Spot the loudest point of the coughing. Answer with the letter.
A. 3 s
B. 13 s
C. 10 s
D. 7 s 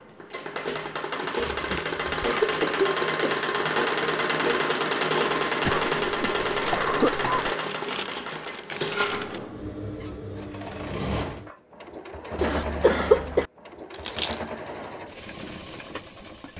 B.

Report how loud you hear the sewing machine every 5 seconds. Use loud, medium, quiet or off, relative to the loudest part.
loud, loud, medium, quiet.